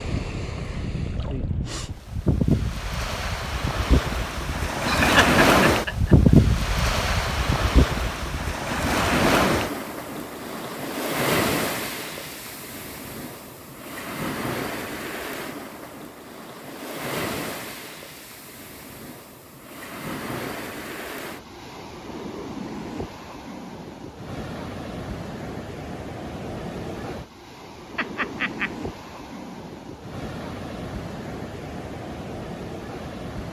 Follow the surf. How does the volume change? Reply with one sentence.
The volume of the surf goes down.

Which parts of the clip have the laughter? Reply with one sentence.
The laughter can be heard from 4.8 to 6.3 s and from 27.9 to 28.7 s.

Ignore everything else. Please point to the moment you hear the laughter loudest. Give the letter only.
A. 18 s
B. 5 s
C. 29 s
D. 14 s
B.